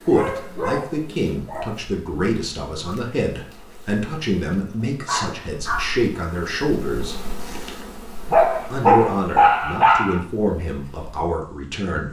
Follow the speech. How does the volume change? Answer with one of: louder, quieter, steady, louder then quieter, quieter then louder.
steady.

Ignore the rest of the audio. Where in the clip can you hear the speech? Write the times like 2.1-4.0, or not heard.
0.0-7.2, 8.7-12.0.